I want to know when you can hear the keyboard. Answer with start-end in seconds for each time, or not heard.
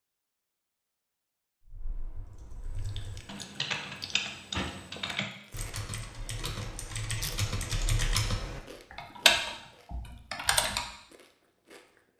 1.6-10.8.